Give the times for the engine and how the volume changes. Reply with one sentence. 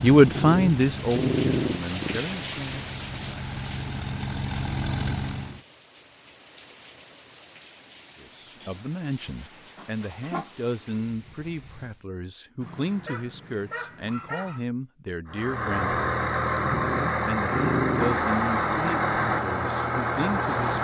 You can hear the engine from 0.0 to 5.6 s, getting quieter then louder; and from 15.2 to 20.7 s, at a steady volume.